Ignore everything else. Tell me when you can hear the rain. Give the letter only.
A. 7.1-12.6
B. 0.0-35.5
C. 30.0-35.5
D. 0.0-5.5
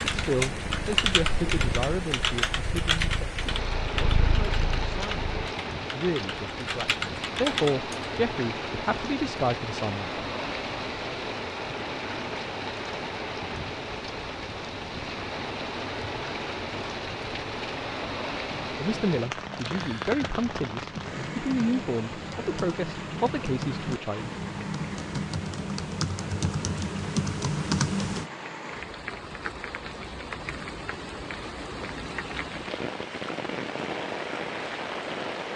B.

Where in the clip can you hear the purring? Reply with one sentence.
The purring can be heard from 0.0 to 5.5 s.